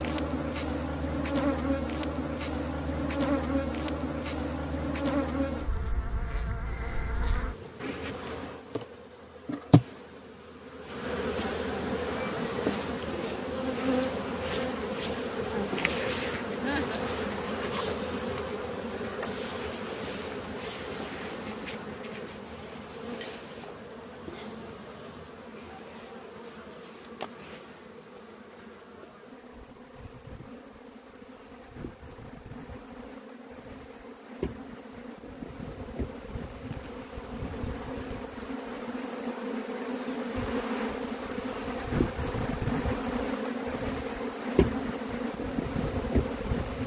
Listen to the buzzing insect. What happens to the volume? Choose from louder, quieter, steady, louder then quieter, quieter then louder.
quieter then louder.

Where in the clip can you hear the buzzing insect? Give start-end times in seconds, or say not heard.
0.0-46.8.